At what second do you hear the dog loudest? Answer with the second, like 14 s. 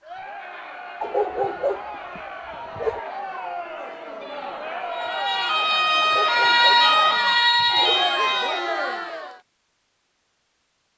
1 s.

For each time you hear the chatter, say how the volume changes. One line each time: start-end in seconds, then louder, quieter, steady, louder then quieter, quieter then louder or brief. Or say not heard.
0.0-9.4 louder.